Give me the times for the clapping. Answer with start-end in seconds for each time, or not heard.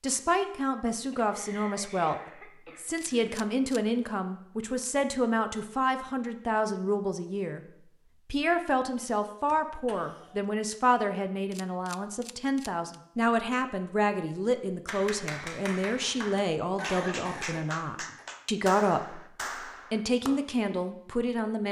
14.8-20.3.